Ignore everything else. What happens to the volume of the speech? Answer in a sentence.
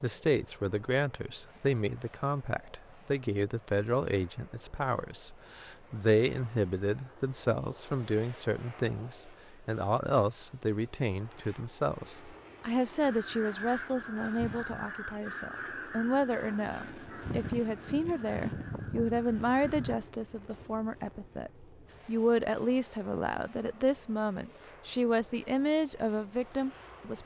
The loudness of the speech stays about the same.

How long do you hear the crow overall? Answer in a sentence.
The crow can be heard for 7 seconds in total.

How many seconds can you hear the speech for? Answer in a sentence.
You can hear the speech for 27 seconds altogether.